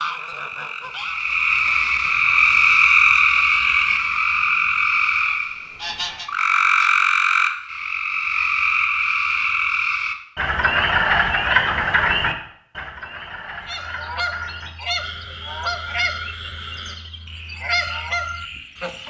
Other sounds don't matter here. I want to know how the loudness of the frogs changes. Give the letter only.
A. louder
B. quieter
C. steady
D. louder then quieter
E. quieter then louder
B.